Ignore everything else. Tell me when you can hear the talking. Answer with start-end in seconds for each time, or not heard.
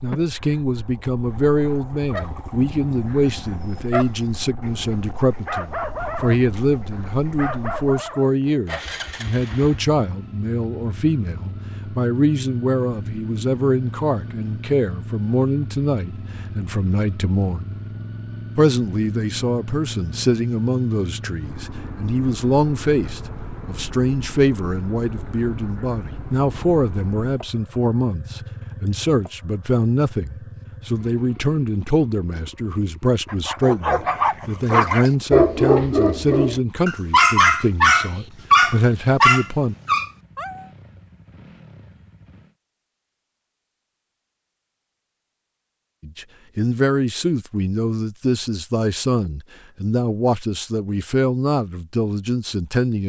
0.0-17.8, 18.6-39.8, 46.0-53.0.